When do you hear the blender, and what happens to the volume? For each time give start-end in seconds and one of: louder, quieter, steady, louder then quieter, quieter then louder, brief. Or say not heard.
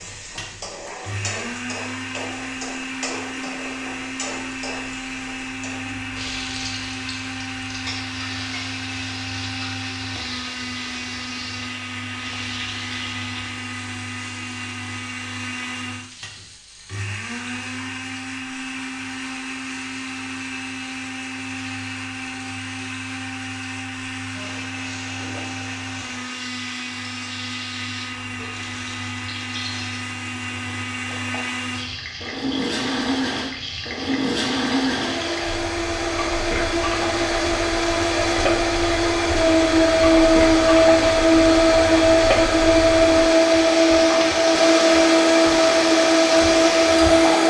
0.0-47.4 louder.